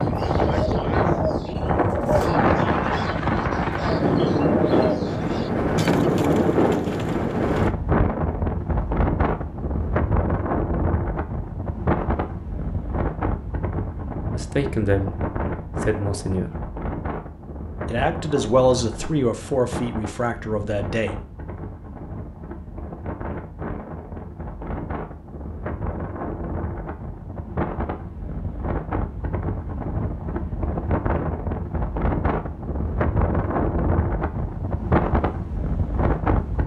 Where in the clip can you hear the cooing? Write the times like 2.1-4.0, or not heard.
0.0-7.7.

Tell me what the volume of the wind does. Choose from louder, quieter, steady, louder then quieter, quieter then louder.
quieter then louder.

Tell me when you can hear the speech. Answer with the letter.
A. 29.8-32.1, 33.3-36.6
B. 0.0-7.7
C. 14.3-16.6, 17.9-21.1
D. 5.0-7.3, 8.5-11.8
C.